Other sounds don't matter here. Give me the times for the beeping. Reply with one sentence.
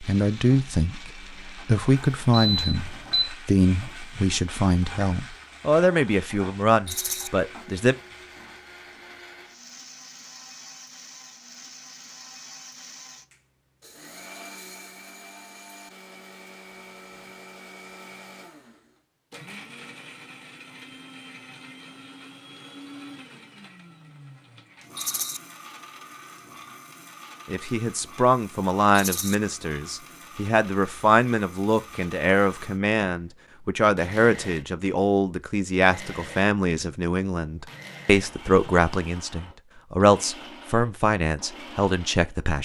The beeping can be heard from 2.3 to 3.2 s.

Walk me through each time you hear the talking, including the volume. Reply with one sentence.
You can hear the talking from 0.0 to 8.0 s, at a steady volume; and from 27.4 to 42.5 s, at a steady volume.